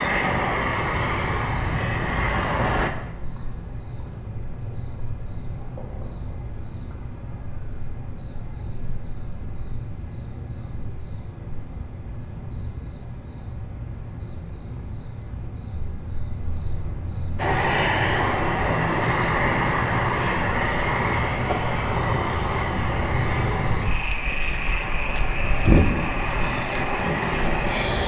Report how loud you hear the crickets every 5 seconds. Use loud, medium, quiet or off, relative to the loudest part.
medium, medium, medium, medium, loud, loud.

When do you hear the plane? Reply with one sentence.
You can hear the plane from 0.0 to 2.9 s and from 17.4 to 28.0 s.